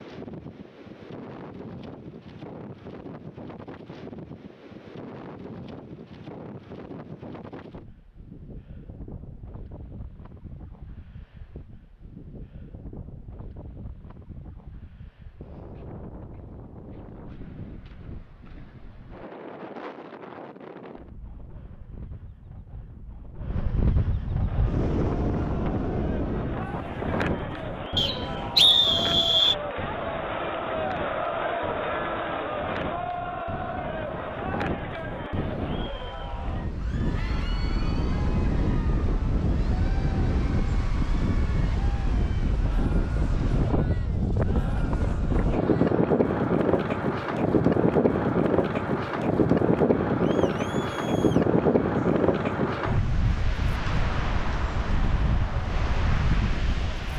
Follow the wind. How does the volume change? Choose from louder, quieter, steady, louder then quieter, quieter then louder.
louder.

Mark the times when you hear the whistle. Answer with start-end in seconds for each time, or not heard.
27.9-29.6.